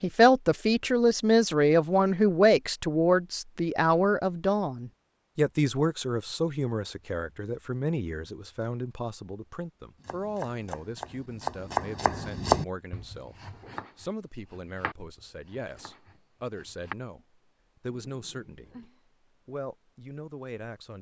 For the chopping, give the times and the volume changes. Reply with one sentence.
You can hear the chopping from 10.0 to 16.9 s, getting louder then quieter.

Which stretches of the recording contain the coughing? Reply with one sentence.
You can't hear the coughing here.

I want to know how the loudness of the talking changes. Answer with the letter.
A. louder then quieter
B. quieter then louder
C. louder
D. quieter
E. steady
D.